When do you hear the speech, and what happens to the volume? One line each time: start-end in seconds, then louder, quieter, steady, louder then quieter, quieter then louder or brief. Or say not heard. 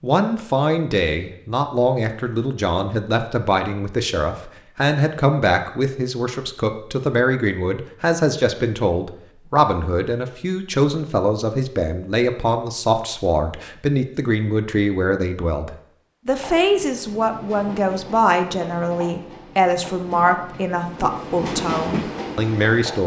0.0-23.0 steady.